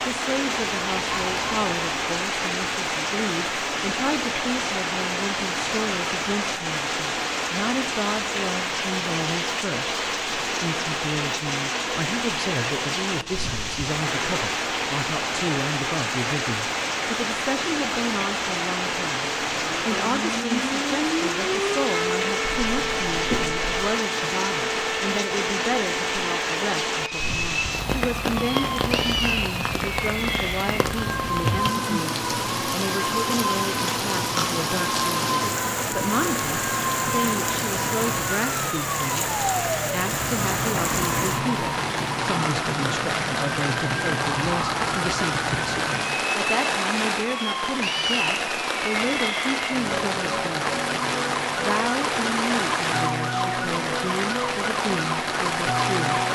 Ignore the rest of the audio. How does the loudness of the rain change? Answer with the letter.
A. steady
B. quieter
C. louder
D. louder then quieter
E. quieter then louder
A.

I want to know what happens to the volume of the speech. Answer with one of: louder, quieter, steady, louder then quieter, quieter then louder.
steady.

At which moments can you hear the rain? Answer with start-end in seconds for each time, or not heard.
0.0-56.3.